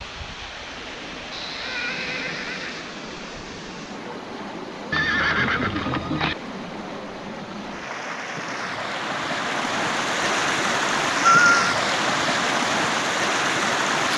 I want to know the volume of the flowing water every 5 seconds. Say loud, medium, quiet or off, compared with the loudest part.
quiet, medium, loud.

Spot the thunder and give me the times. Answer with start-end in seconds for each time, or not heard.
not heard.